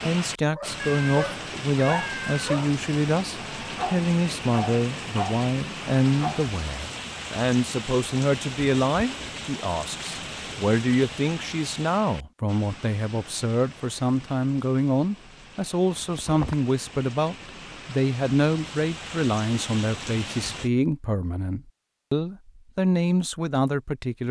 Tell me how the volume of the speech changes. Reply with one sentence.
The loudness of the speech stays about the same.